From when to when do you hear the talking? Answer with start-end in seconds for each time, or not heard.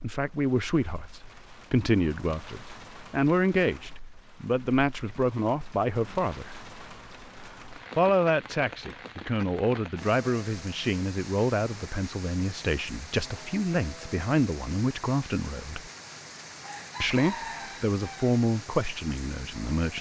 0.0-6.5, 8.0-15.9, 17.0-19.9.